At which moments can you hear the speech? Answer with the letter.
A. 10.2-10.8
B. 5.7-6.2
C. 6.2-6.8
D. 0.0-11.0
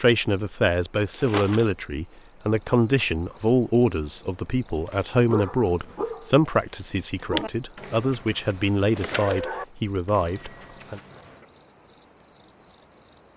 D.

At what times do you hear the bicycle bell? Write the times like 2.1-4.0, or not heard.
10.2-10.8.